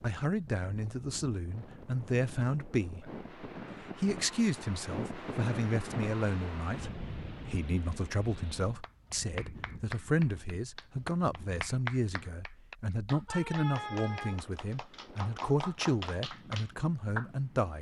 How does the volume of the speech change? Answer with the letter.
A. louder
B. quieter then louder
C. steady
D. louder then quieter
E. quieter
C.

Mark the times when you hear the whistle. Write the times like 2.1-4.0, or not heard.
not heard.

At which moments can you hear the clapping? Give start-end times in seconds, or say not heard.
8.8-17.2.